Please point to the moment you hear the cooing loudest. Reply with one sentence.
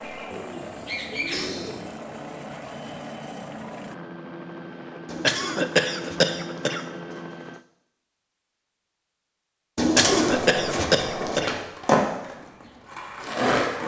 The loudest moment of the cooing is at 10 seconds.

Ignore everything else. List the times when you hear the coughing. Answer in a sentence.
You can hear the coughing from 0.0 to 1.7 s, from 5.2 to 6.8 s and from 9.9 to 11.6 s.